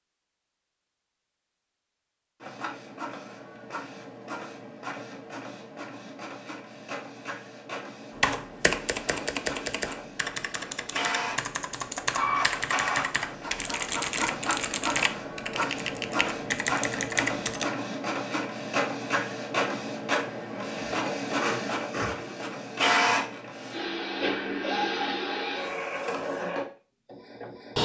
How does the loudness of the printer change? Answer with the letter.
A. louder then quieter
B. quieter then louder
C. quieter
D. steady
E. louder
E.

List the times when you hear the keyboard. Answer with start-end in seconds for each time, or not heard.
8.2-17.6.